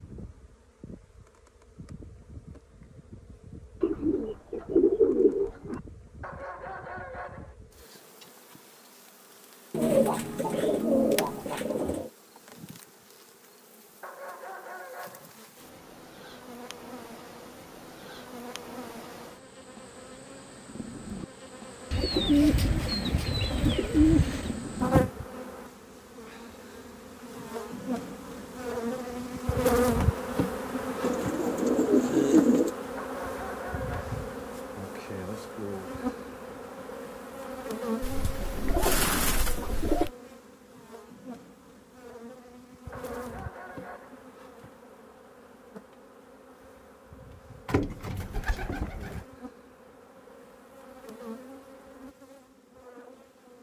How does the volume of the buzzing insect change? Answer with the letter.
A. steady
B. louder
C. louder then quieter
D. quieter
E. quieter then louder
C.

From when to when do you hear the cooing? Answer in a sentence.
You can hear the cooing from 3.8 to 5.8 s, from 9.7 to 12.1 s, from 21.9 to 24.6 s, from 31.0 to 32.8 s, from 38.0 to 40.1 s and from 47.6 to 49.2 s.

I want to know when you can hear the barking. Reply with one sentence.
The barking can be heard from 6.2 to 7.5 s, from 14.0 to 15.3 s, from 33.0 to 34.2 s and from 42.9 to 44.2 s.